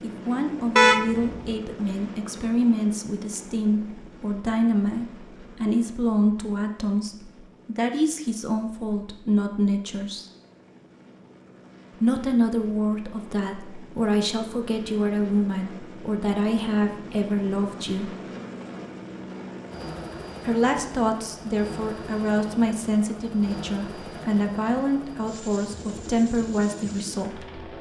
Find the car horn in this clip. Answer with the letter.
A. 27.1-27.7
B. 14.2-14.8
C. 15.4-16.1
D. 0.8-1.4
D.